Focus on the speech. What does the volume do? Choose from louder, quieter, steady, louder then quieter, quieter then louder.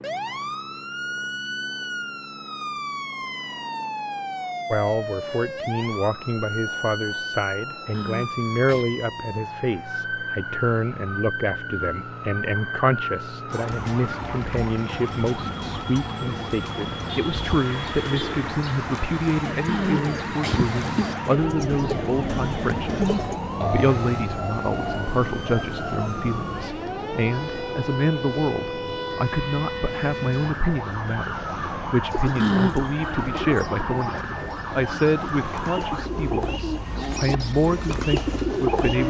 steady.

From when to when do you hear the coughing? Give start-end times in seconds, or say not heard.
7.9-9.0, 19.6-21.1, 32.4-32.9.